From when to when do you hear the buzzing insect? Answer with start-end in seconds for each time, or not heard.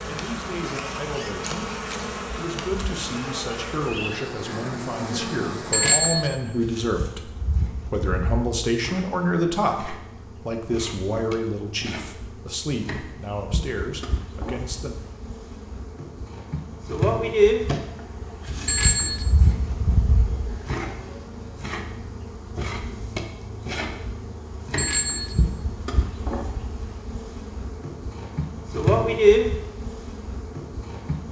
0.0-31.2.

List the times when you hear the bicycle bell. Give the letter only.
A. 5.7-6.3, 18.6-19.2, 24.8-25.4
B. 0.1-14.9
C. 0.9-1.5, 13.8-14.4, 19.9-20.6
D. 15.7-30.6
A.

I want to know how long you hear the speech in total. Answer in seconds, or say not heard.
15 s.